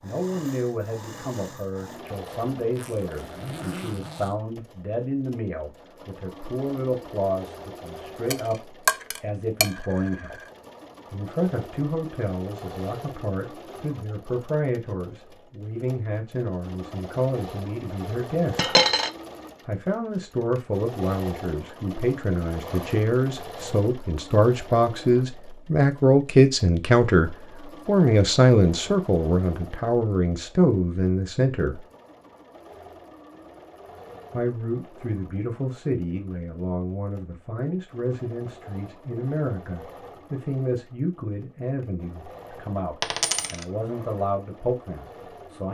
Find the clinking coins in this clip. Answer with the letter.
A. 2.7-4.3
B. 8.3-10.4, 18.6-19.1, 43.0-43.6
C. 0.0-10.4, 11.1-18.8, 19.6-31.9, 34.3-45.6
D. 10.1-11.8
B.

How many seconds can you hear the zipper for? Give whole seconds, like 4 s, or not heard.
2 s.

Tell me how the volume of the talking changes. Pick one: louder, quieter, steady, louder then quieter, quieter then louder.
louder then quieter.